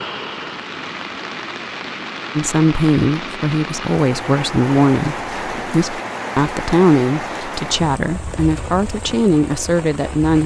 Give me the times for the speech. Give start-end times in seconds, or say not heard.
2.4-10.4.